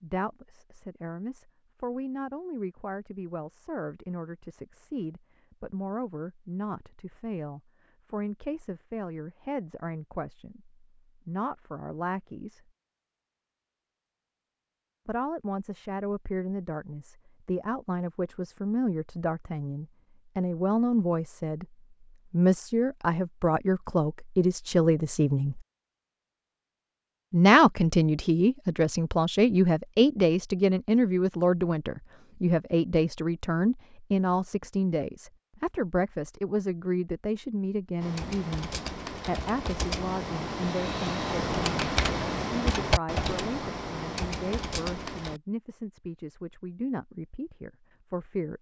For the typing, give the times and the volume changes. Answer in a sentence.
The typing can be heard from 38.0 to 45.4 s, getting louder then quieter.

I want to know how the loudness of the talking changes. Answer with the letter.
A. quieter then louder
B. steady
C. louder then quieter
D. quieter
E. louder
C.